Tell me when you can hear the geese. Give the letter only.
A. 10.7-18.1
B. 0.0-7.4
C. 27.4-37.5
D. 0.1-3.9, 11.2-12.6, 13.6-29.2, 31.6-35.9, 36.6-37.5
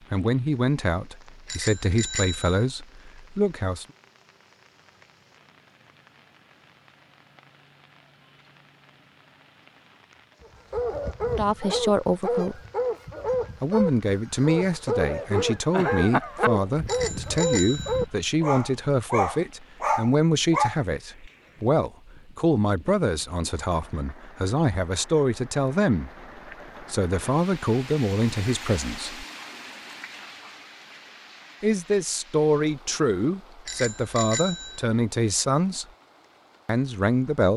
A.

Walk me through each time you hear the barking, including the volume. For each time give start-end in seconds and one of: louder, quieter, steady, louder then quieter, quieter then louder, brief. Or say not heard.
10.7-20.8 steady.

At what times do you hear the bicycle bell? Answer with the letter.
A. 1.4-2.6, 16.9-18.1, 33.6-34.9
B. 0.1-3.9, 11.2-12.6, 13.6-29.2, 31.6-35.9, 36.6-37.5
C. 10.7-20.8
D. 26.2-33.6
A.